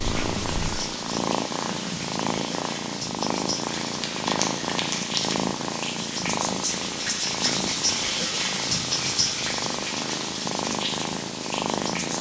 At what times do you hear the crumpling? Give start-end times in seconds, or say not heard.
3.8-5.6.